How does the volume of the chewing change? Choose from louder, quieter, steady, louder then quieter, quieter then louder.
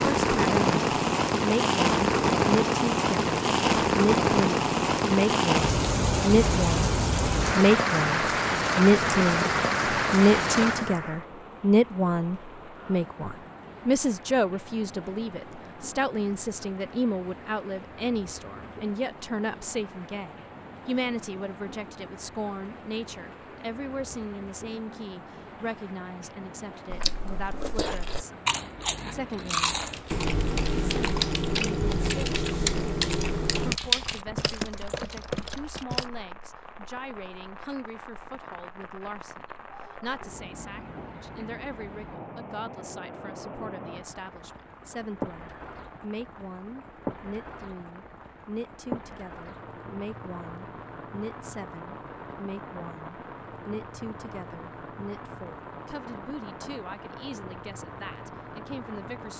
steady.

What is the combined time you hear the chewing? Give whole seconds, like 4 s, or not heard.
7 s.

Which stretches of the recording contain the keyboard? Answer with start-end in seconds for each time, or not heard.
29.8-36.0.